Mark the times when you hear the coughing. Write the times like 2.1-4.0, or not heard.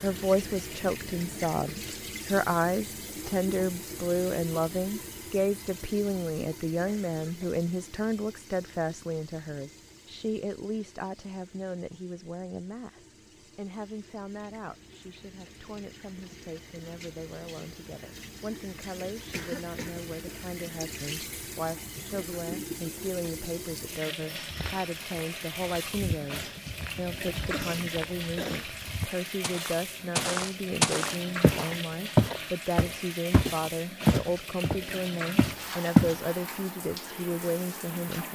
6.8-7.5, 19.3-19.9, 27.4-28.6.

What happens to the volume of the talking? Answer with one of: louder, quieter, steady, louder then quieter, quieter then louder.
quieter then louder.